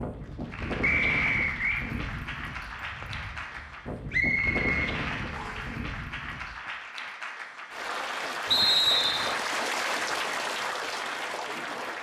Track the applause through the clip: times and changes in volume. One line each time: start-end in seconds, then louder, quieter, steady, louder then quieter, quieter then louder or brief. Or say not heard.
0.0-11.9 louder.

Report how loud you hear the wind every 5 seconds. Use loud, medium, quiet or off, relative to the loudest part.
loud, loud, off.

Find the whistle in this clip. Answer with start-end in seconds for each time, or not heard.
0.8-1.9, 4.1-5.7, 8.5-9.3.